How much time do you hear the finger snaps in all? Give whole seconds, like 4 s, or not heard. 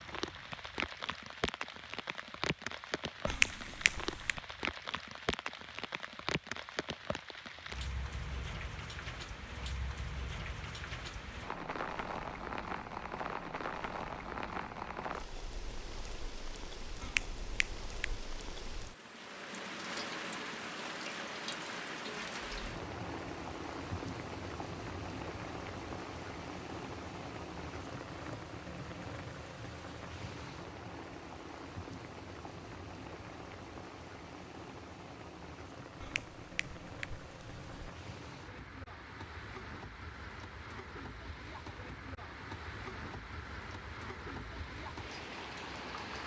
4 s.